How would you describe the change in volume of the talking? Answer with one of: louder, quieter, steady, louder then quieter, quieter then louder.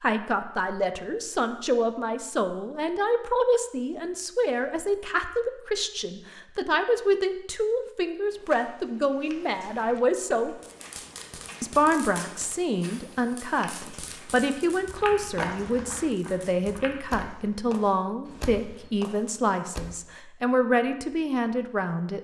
steady.